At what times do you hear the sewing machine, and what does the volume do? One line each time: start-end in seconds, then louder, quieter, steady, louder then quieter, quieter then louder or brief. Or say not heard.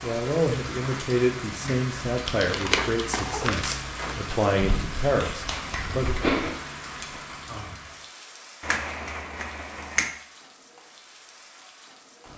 not heard.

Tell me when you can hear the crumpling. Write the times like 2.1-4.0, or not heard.
2.5-4.0.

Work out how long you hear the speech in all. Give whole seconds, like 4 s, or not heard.
6 s.